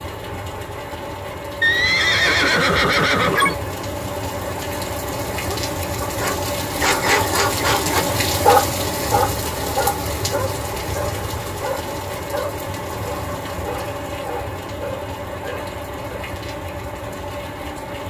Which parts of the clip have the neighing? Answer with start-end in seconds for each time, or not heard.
1.6-3.5.